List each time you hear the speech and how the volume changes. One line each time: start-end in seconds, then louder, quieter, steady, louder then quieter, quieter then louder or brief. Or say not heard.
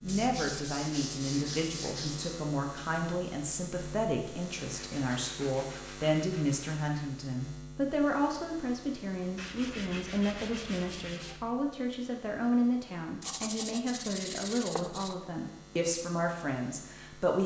0.0-17.4 steady.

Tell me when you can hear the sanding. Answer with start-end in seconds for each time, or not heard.
0.1-2.4, 4.8-7.0, 9.3-11.4, 13.2-15.2.